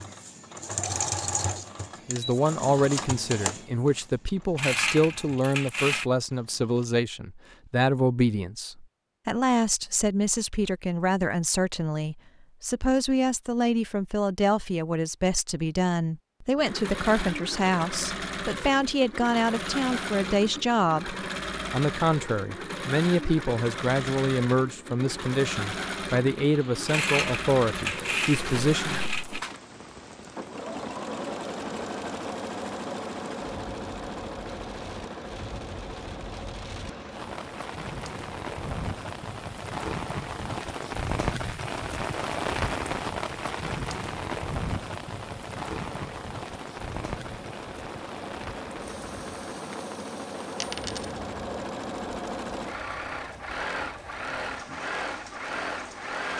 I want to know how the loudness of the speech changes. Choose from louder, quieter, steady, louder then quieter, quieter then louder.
steady.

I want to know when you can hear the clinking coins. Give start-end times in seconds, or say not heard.
4.5-6.1, 26.9-29.4, 50.6-51.2.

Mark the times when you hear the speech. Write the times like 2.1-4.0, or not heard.
2.0-29.0.